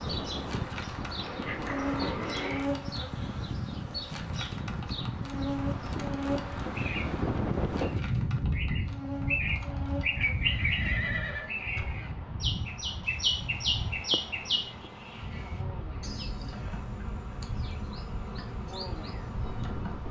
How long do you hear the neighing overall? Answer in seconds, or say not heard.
3 s.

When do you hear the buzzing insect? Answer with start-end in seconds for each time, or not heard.
0.2-20.0.